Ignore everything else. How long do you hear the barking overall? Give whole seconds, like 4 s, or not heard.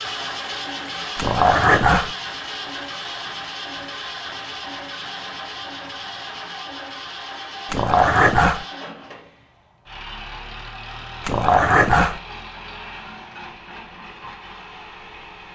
3 s.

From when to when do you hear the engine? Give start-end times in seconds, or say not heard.
0.0-15.4.